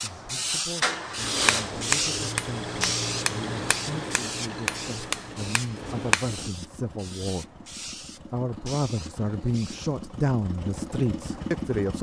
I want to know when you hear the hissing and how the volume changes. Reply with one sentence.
You can hear the hissing from 0.0 to 9.9 s, getting quieter.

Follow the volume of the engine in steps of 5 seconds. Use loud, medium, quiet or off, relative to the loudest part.
loud, medium, loud.